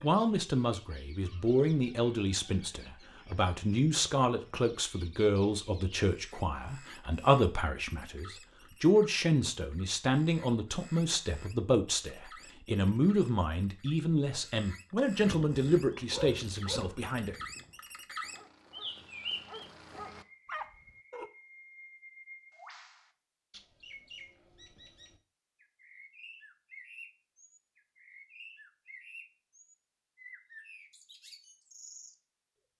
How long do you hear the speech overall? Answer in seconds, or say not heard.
17 s.